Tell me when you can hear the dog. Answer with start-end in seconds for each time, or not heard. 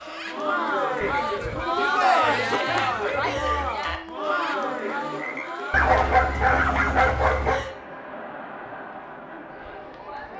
1.0-2.6, 5.7-7.7.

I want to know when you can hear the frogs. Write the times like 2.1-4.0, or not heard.
0.0-7.8.